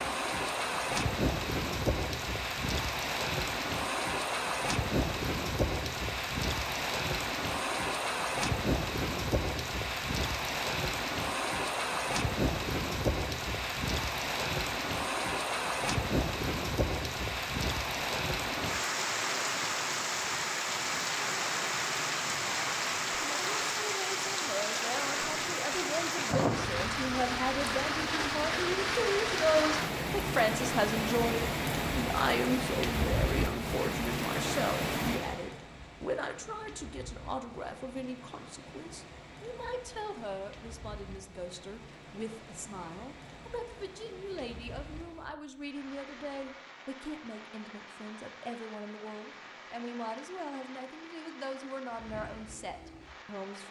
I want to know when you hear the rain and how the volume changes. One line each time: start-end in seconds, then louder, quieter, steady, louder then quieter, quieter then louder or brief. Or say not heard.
0.0-53.6 quieter.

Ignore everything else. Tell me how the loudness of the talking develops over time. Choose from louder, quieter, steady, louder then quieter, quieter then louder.
quieter.